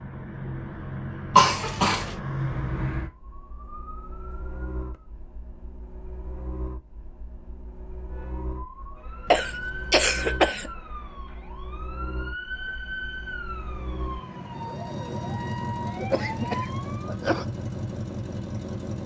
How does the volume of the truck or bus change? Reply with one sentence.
The volume of the truck or bus goes down, then up.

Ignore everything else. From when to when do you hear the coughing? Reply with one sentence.
You can hear the coughing from 1.4 to 2.1 s, from 9.2 to 10.7 s and from 16.0 to 17.4 s.